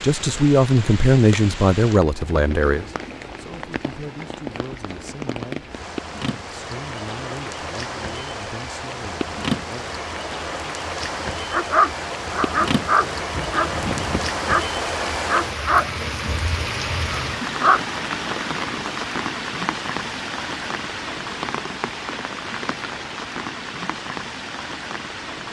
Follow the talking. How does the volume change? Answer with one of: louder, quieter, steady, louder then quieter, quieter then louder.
quieter.